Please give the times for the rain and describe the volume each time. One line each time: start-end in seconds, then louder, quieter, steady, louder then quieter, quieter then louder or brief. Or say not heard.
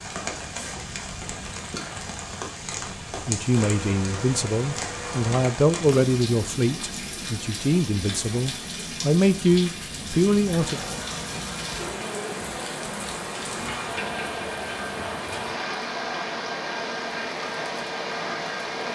0.0-18.9 steady.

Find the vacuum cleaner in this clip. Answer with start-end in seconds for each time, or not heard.
3.5-5.5, 10.6-18.9.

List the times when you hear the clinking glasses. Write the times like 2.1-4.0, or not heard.
not heard.